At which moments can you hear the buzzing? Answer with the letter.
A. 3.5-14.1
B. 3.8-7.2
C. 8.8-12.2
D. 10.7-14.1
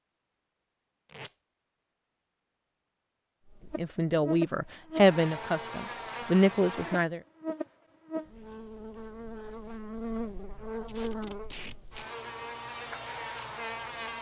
A.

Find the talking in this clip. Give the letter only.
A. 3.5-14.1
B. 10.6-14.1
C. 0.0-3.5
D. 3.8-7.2
D.